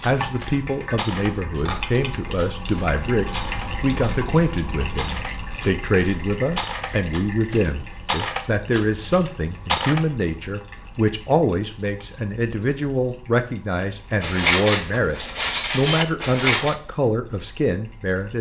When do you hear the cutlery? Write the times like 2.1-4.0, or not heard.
0.0-10.0, 14.2-16.8.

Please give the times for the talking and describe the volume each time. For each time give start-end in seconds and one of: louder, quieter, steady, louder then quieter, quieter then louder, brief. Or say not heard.
0.0-18.3 steady.